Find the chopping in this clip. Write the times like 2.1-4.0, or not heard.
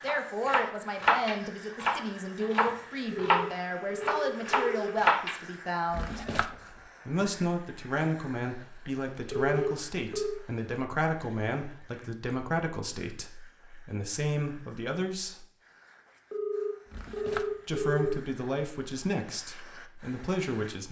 0.1-5.4.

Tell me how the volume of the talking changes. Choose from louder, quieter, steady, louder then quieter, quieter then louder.
steady.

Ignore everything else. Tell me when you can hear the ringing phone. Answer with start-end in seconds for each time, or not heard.
3.3-5.0, 9.3-10.4, 16.3-18.1.